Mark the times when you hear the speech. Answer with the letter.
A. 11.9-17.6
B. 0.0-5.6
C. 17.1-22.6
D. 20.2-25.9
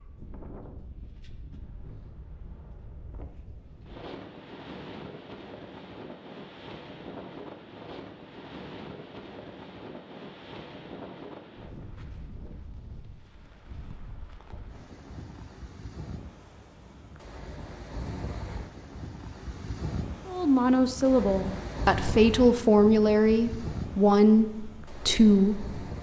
D.